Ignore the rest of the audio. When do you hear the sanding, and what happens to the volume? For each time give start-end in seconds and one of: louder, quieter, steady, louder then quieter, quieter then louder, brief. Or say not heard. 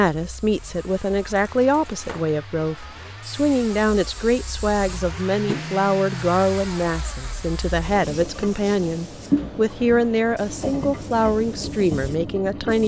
not heard.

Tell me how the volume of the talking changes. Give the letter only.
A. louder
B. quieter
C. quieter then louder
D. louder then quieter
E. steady
E.